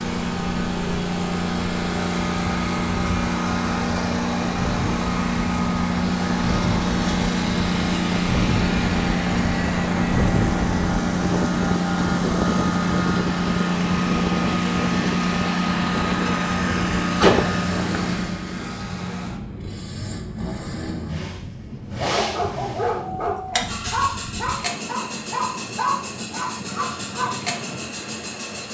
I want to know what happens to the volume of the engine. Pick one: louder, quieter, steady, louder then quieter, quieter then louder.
quieter.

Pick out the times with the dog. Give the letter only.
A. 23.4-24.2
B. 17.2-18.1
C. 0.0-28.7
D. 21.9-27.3
D.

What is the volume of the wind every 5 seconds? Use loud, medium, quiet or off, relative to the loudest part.
medium, loud, loud, medium, medium, medium.